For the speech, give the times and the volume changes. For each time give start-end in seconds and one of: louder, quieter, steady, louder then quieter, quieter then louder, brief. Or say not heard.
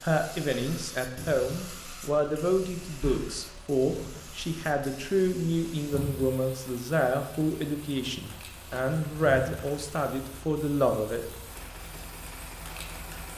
0.0-11.2 steady.